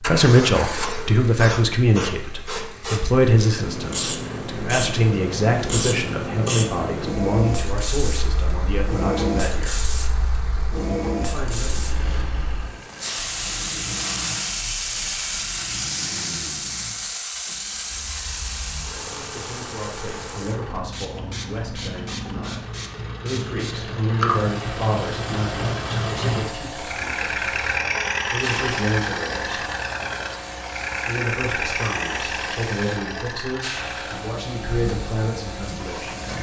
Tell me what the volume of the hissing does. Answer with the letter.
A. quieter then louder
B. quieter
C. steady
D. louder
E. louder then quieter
B.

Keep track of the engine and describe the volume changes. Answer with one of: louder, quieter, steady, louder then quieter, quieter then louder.
louder.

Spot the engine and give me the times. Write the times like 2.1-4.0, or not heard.
0.0-36.3.